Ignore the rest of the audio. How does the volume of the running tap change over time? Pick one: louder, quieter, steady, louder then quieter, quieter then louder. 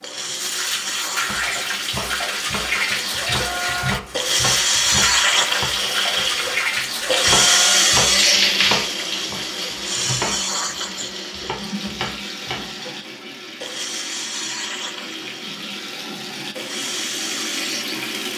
quieter.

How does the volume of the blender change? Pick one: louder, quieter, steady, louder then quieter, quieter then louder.
louder then quieter.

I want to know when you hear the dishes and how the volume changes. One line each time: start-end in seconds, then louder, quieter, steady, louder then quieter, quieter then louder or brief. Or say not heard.
not heard.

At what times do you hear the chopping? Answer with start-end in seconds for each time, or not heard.
0.7-12.7.